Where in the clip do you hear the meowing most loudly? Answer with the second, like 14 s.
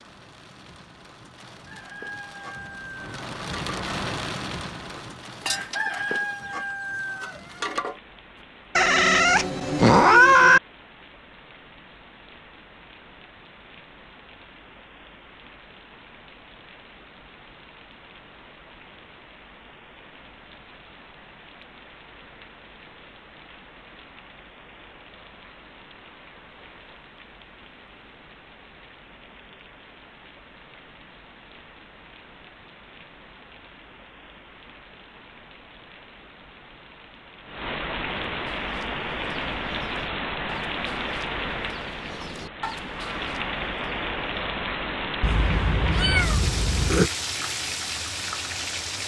10 s.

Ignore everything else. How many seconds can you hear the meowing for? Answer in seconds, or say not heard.
4 s.